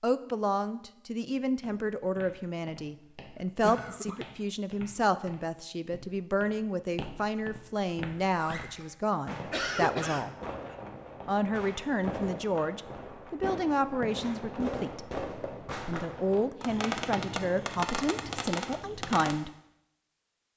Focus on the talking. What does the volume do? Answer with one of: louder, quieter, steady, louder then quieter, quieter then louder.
steady.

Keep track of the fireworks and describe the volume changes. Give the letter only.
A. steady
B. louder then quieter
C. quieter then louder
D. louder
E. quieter
D.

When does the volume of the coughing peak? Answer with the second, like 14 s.
10 s.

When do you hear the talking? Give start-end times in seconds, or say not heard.
0.0-10.3, 11.2-19.5.